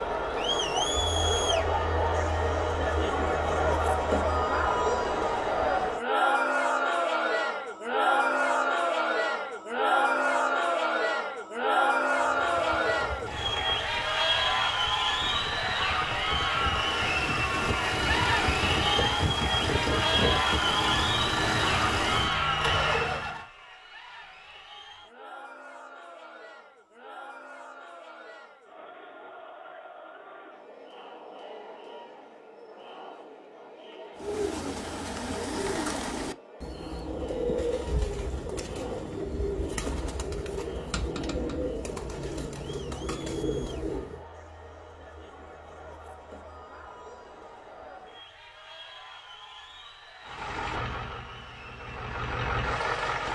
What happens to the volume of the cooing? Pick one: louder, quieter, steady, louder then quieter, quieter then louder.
steady.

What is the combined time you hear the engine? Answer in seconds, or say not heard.
14 s.